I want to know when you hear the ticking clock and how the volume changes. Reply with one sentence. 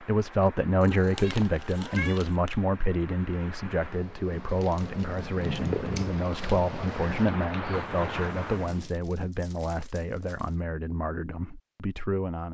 You can't hear the ticking clock here.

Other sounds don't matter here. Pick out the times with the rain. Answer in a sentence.
The rain can be heard from 0.0 to 8.8 s.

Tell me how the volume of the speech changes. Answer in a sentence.
The volume of the speech goes down.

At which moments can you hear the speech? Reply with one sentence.
You can hear the speech from 0.0 to 12.4 s.